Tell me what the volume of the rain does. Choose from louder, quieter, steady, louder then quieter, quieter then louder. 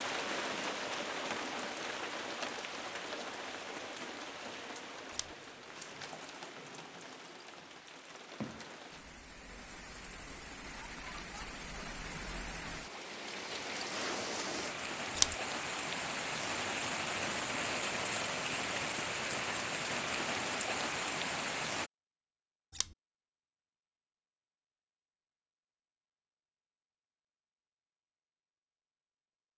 quieter then louder.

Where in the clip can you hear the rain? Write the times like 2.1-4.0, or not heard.
0.0-21.9.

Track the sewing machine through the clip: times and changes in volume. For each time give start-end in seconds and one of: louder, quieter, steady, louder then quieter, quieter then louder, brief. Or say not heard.
not heard.